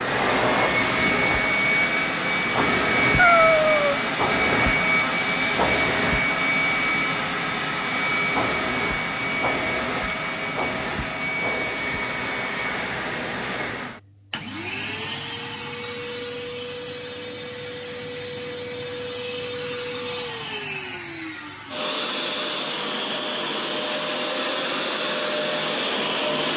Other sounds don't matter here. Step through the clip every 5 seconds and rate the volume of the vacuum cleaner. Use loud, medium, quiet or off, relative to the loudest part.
loud, loud, medium, medium, medium, loud.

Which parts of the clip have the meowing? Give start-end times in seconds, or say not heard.
3.1-4.0.